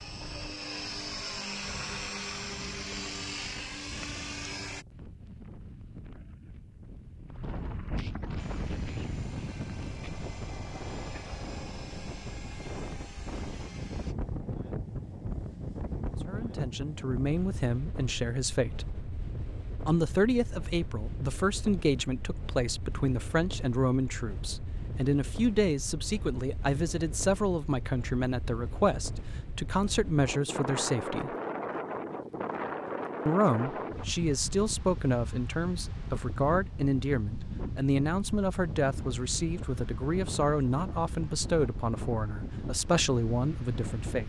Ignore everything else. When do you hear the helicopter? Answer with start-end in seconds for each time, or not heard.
0.0-4.8, 8.3-14.2.